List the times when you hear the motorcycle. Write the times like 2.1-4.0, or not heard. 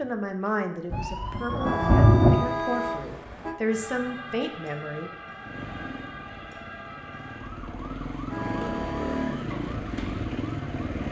5.4-11.0.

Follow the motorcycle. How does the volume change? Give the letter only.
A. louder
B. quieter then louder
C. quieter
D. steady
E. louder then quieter
A.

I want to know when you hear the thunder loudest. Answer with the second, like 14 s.
2 s.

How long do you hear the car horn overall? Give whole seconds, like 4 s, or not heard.
3 s.